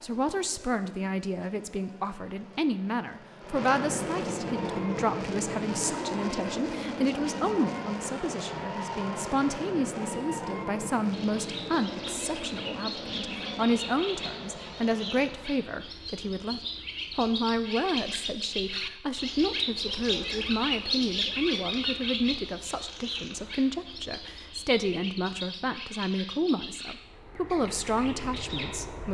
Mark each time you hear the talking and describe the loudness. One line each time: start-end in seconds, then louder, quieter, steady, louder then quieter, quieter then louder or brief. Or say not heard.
0.0-29.0 steady.